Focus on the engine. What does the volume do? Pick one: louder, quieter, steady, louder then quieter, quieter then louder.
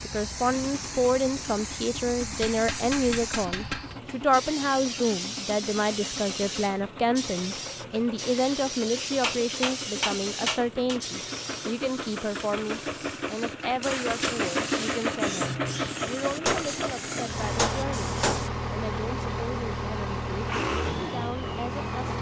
louder.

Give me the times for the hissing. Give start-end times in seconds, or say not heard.
0.0-18.5.